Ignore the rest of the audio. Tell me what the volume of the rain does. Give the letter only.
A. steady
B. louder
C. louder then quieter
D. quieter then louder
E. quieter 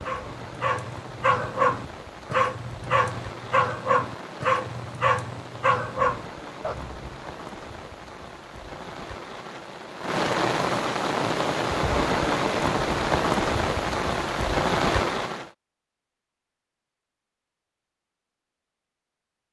B.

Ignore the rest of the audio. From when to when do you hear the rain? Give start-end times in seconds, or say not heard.
0.0-15.5.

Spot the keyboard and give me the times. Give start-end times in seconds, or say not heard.
not heard.